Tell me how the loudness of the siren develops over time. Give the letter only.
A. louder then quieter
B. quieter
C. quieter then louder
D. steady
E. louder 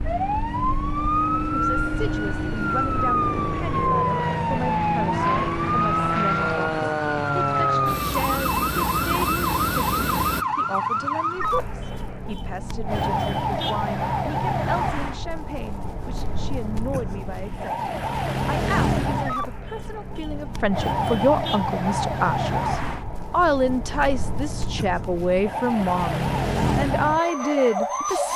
D.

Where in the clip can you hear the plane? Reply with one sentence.
You can hear the plane from 0.0 to 10.4 s.